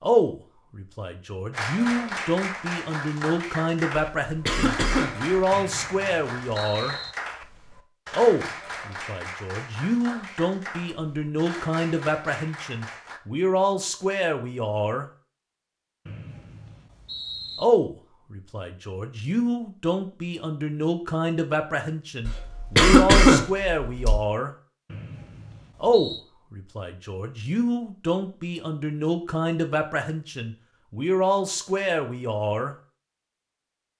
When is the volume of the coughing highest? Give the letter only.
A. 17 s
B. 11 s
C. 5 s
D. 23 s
D.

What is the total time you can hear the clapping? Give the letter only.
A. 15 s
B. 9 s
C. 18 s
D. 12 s
D.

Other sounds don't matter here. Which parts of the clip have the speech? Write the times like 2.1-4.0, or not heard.
0.0-7.0, 8.1-15.1, 17.6-24.5, 25.8-32.8.